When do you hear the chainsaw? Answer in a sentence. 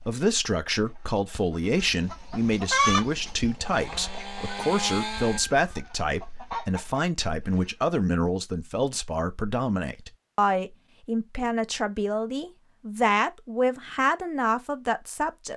You can hear the chainsaw from 2.6 to 5.4 s.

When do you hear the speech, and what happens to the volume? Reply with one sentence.
You can hear the speech from 0.0 to 15.5 s, at a steady volume.